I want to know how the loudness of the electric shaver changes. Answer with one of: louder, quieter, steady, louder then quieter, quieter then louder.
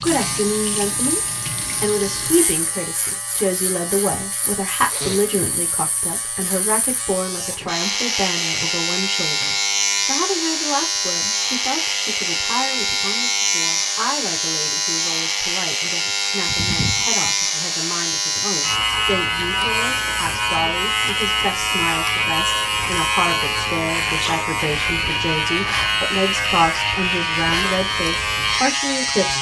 louder.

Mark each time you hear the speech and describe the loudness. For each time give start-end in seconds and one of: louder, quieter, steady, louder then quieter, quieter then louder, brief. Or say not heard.
0.0-1.2 brief
1.8-29.3 quieter then louder.